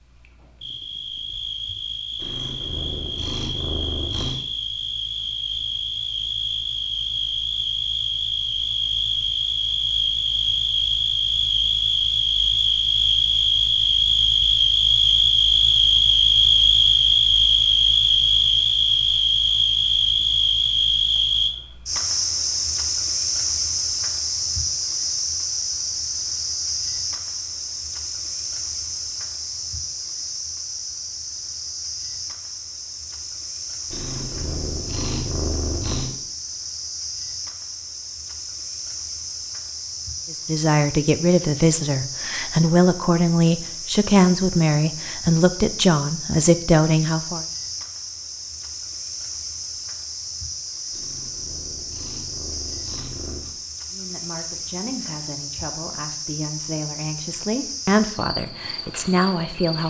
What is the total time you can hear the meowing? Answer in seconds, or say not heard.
7 s.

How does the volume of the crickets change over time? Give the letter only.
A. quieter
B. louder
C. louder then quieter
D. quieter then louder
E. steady
C.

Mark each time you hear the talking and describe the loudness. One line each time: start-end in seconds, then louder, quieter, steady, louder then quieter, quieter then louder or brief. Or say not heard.
40.3-47.5 steady
53.9-59.8 louder.